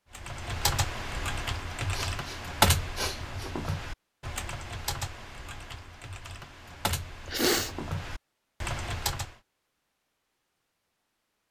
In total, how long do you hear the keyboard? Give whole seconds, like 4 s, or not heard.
9 s.